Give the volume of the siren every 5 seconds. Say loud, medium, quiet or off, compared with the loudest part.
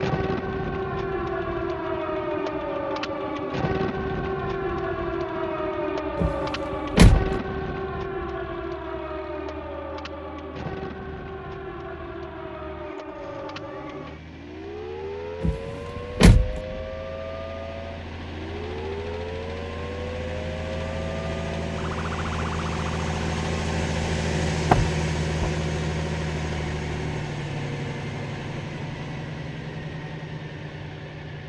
loud, loud, medium, medium, medium, off, off.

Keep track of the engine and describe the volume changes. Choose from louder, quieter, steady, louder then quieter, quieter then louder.
louder.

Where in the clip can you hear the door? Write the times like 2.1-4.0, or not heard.
6.2-7.3, 15.4-16.6, 24.7-25.6.